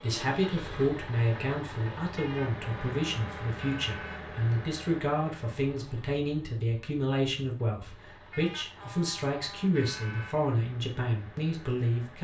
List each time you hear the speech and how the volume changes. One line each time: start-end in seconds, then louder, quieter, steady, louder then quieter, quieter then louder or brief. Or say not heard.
0.0-12.1 steady.